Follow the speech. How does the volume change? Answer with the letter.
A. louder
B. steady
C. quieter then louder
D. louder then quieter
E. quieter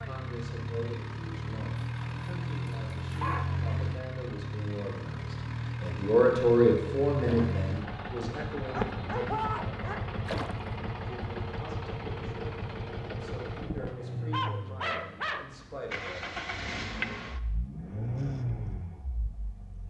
D.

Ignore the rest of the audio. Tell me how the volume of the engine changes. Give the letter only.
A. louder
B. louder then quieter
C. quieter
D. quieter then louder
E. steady
E.